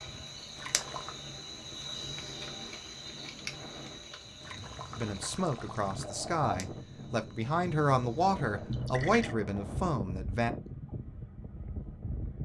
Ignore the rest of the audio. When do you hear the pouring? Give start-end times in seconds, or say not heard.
0.6-1.2, 4.4-6.2, 8.7-9.3.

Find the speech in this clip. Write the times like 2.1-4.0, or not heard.
5.0-10.5.